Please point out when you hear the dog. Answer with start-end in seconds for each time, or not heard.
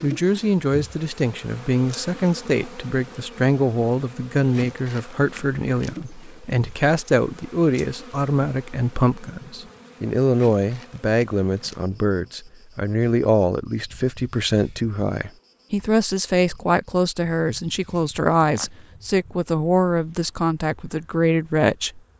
not heard.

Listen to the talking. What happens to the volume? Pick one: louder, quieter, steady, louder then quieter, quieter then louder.
steady.